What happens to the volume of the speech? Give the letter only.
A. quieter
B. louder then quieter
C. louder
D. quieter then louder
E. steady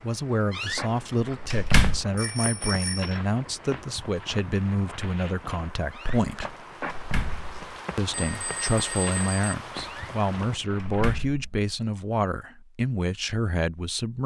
E.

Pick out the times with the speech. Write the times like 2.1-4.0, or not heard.
0.0-6.5, 8.0-14.2.